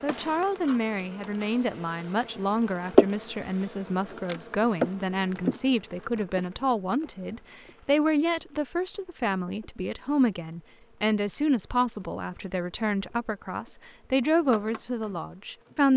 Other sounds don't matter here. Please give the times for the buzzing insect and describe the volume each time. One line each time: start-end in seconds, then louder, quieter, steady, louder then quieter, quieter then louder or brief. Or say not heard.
0.0-15.9 quieter then louder.